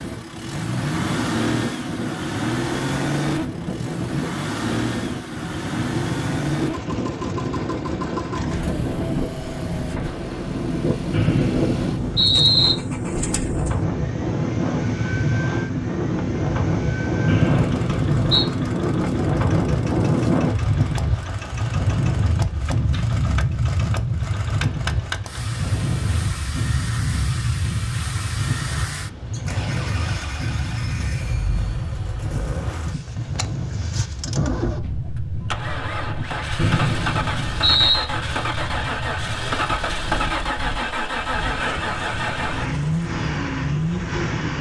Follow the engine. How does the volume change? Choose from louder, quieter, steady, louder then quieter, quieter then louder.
quieter then louder.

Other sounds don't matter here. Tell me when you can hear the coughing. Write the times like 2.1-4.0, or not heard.
not heard.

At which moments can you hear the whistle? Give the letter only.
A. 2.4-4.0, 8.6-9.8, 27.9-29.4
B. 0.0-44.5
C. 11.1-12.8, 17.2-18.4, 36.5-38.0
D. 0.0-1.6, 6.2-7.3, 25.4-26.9
C.